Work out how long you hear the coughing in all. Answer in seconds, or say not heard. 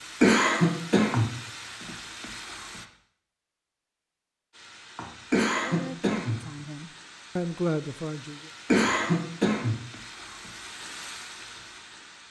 3 s.